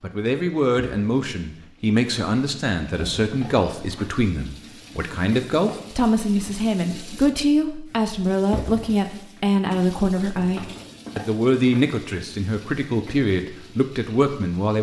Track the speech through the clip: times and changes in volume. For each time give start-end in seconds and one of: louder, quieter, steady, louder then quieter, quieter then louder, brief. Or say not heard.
0.0-14.7 steady.